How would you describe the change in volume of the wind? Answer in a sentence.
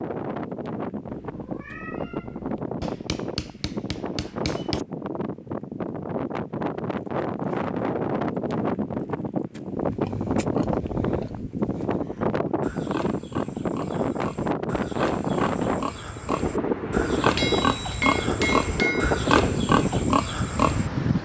The loudness of the wind goes up.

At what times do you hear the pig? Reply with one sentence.
You can hear the pig from 9.7 to 20.9 s.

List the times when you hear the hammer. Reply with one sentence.
You can hear the hammer from 2.8 to 4.8 s and from 17.4 to 19.2 s.